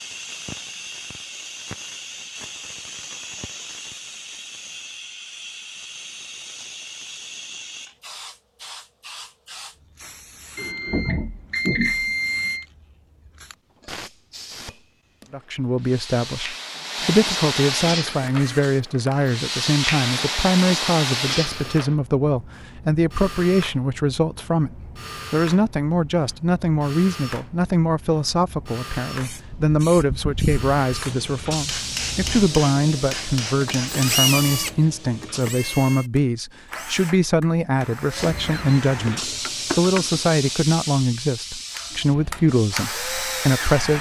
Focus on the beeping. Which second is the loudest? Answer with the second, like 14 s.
12 s.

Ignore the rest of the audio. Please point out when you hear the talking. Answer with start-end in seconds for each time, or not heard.
15.3-43.9.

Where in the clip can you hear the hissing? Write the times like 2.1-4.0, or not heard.
0.0-21.9, 29.1-35.5, 38.1-43.9.